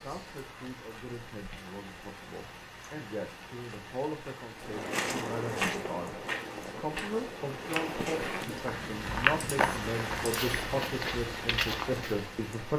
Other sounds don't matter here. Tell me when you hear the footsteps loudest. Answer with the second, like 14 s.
9 s.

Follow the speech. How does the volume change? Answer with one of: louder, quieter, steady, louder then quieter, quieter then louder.
louder.